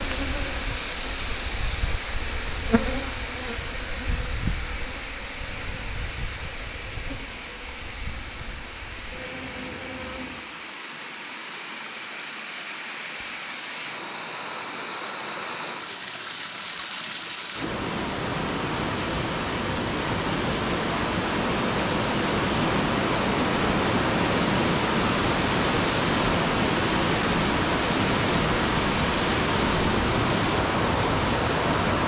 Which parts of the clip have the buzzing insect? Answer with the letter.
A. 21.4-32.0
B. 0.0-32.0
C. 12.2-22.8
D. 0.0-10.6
D.